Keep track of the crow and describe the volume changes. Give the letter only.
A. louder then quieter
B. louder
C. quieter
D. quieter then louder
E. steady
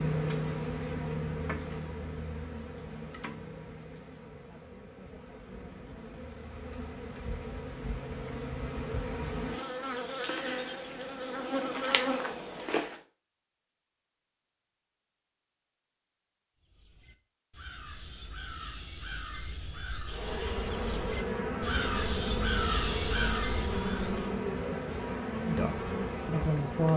B.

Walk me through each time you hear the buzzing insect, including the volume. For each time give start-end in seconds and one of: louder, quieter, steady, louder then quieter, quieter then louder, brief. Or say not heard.
0.0-13.0 quieter then louder
20.1-26.9 steady.